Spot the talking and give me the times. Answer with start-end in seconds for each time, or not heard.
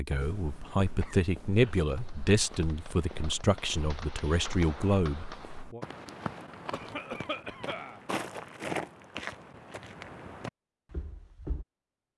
0.0-5.8.